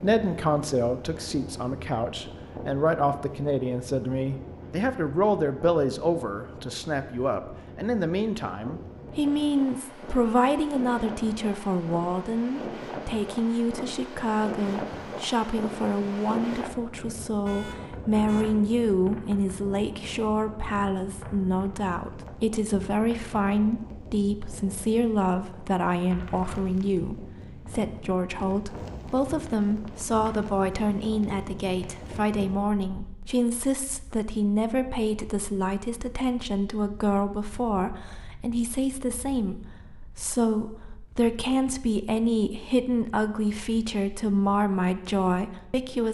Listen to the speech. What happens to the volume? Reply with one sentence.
The loudness of the speech stays about the same.